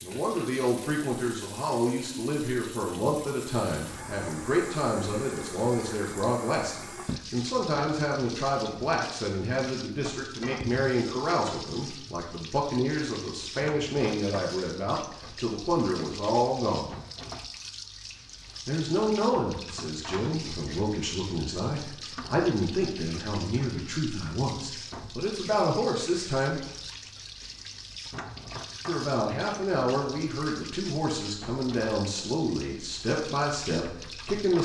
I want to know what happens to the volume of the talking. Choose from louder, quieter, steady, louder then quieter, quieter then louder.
steady.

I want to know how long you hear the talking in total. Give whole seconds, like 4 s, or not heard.
31 s.